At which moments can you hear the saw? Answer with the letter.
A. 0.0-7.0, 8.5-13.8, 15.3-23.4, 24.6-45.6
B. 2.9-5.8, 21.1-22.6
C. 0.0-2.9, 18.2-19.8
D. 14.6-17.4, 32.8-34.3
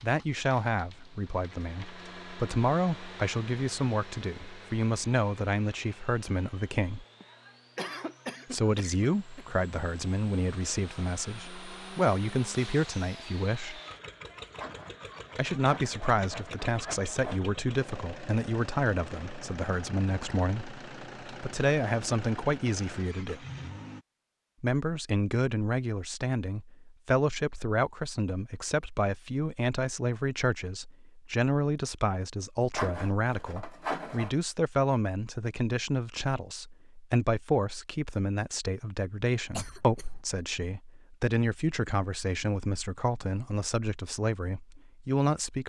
D.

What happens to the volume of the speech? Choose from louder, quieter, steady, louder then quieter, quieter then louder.
steady.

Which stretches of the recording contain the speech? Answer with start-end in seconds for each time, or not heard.
0.0-7.0, 8.5-13.8, 15.3-23.4, 24.6-45.6.